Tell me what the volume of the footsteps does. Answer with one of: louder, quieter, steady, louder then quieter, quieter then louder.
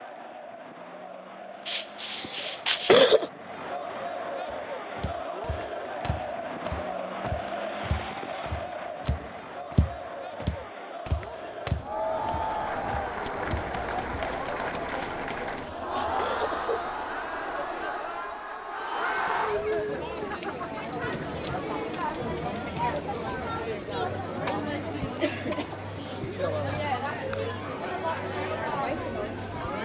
louder.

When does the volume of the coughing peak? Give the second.
3 s.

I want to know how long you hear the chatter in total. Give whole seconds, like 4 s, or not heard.
30 s.